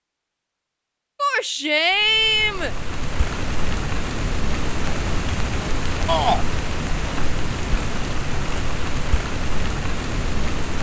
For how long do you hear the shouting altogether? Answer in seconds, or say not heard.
2 s.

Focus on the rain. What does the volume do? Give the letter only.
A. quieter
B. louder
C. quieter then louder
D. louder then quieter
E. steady
E.